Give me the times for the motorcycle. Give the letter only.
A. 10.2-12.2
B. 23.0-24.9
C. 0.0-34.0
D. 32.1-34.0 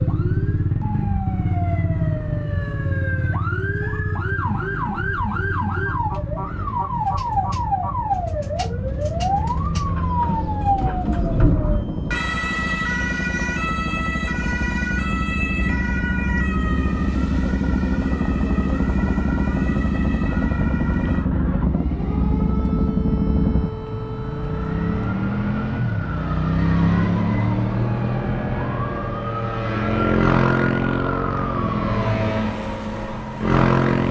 C.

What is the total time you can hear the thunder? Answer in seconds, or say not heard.
2 s.